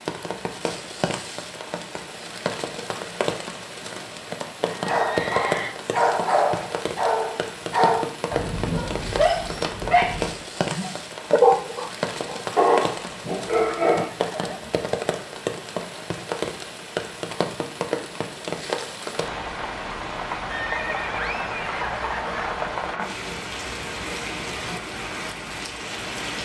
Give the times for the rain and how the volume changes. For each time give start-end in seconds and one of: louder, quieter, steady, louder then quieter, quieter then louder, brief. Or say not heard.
0.0-26.3 steady.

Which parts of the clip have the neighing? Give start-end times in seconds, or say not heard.
4.8-5.8, 13.5-14.8, 20.5-22.5.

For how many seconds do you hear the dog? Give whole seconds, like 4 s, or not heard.
9 s.